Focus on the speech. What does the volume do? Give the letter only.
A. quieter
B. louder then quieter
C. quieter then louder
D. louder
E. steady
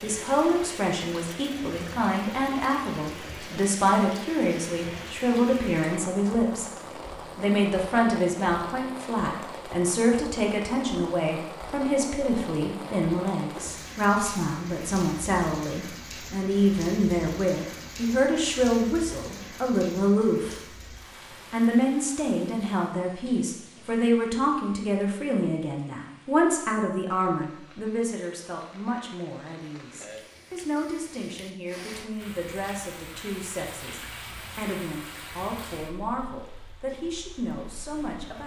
A.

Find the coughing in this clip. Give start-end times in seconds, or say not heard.
not heard.